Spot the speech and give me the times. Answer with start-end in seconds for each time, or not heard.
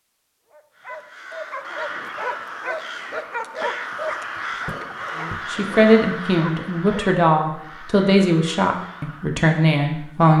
5.2-10.3.